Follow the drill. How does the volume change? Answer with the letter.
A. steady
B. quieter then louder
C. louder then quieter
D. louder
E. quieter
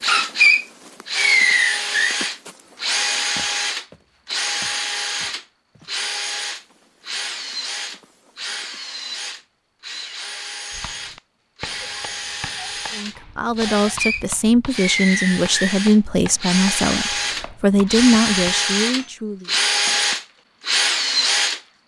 B.